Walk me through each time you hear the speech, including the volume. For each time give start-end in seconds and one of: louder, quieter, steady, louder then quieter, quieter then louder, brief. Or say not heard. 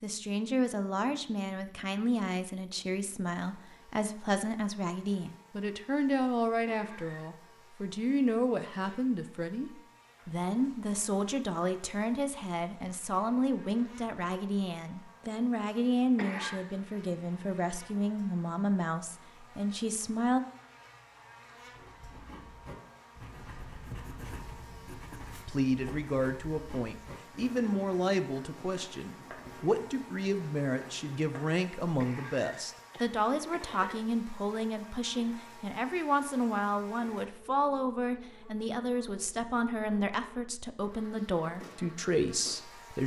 0.0-20.4 steady
25.4-43.0 steady.